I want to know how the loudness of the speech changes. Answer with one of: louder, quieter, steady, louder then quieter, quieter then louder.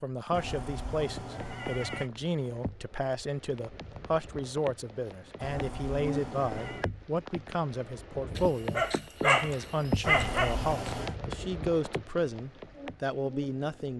steady.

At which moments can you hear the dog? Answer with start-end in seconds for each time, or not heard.
8.3-10.9.